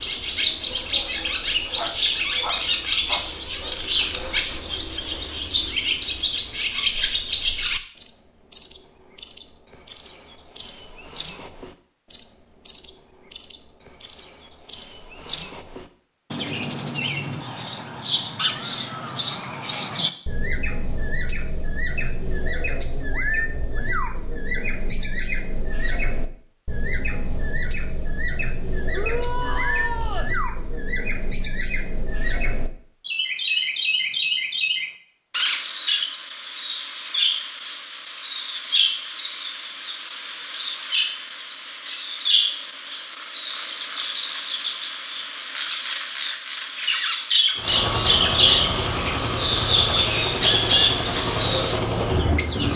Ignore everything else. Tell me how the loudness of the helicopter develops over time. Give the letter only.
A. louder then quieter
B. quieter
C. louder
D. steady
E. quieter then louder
D.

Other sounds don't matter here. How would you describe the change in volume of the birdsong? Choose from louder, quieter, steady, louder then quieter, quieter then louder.
quieter then louder.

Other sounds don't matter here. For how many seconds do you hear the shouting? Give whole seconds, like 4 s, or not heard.
3 s.